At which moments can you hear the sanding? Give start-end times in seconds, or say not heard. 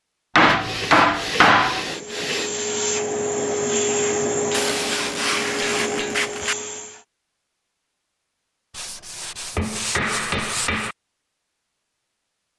0.5-2.7, 4.5-6.5, 8.7-10.9.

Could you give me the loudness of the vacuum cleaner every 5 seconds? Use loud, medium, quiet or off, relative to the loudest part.
loud, medium, off.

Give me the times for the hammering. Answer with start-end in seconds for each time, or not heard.
0.3-1.9, 4.3-6.2, 9.6-10.9.